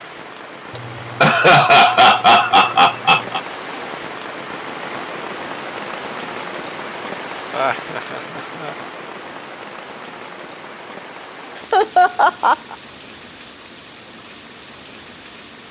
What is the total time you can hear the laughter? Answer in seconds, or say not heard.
5 s.